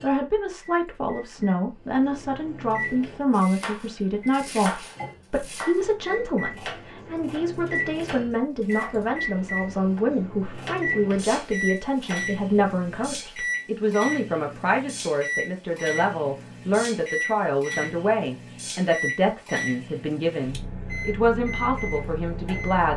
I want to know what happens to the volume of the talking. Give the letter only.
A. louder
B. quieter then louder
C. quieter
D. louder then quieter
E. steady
E.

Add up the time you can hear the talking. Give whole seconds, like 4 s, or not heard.
23 s.